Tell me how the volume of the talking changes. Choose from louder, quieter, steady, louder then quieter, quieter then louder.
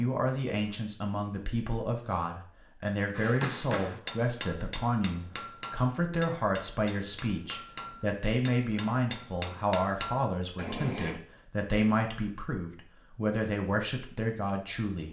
steady.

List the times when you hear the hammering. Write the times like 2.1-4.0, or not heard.
3.1-11.2.